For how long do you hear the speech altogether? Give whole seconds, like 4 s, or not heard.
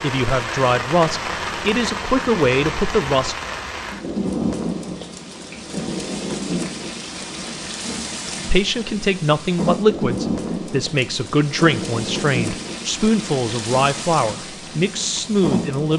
11 s.